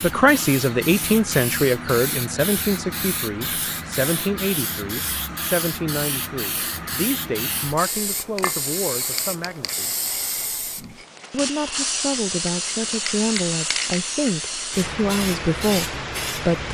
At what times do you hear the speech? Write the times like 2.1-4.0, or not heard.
0.0-9.9, 11.3-16.7.